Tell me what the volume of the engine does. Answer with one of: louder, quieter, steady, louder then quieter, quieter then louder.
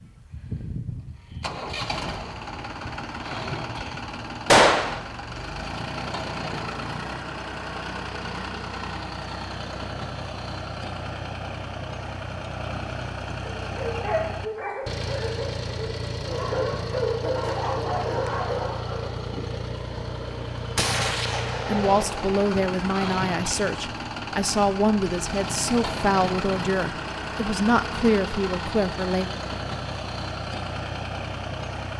steady.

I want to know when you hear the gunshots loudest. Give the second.
5 s.